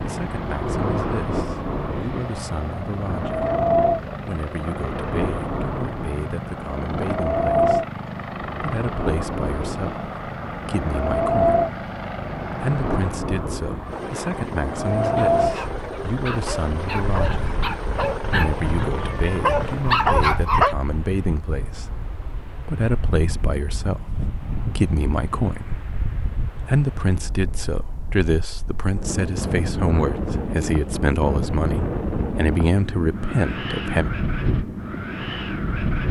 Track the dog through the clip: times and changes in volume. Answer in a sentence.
You can hear the dog from 15.0 to 20.8 s, getting louder.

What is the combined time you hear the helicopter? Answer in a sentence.
You can hear the helicopter for 20 seconds altogether.